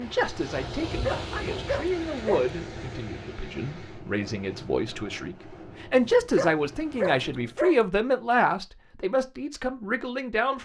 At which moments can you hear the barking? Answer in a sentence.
The barking can be heard from 1.0 to 2.5 s and from 6.3 to 7.8 s.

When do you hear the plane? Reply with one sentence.
You can't hear the plane here.